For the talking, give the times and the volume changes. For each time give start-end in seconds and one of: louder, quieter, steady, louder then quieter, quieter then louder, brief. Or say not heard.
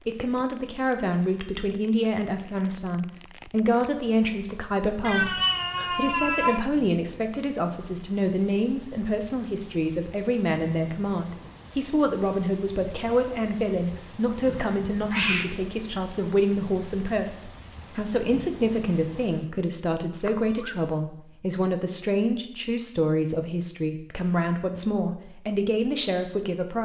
0.1-26.8 steady.